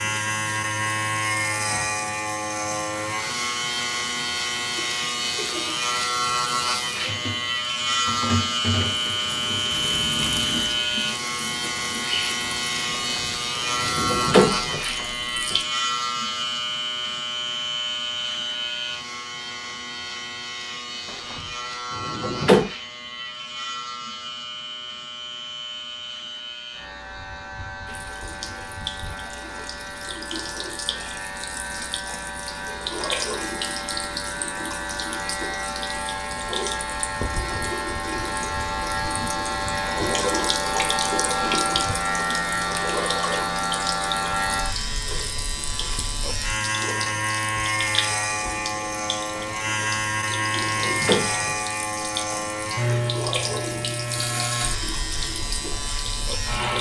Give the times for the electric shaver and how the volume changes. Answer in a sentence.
You can hear the electric shaver from 0.0 to 56.7 s, getting quieter then louder.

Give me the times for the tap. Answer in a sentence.
The tap can be heard from 0.0 to 15.7 s and from 27.9 to 56.7 s.